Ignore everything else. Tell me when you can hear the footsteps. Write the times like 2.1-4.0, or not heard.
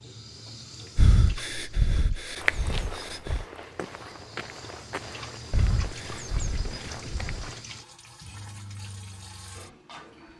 2.4-7.6.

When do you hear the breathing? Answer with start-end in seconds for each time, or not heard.
0.9-3.5, 5.5-7.3.